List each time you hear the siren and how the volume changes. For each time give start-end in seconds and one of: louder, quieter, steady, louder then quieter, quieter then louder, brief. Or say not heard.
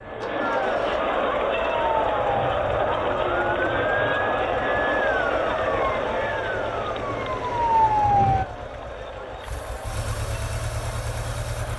0.0-8.4 louder.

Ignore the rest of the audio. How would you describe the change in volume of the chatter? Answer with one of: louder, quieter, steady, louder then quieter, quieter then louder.
quieter.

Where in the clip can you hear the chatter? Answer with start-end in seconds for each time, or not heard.
0.0-11.7.